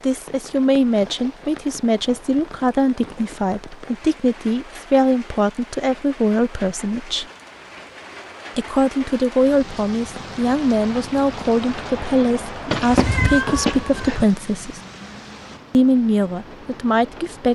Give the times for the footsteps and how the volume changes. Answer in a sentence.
You can't hear the footsteps here.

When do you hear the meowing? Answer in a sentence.
You can hear the meowing from 12.7 to 14.2 s.